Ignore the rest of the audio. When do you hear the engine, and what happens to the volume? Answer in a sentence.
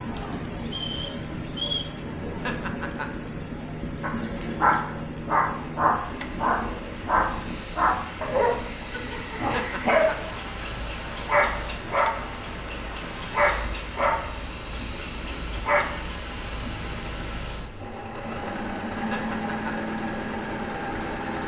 You can hear the engine from 0.0 to 21.4 s, getting louder.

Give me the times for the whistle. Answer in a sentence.
You can hear the whistle from 0.7 to 1.9 s.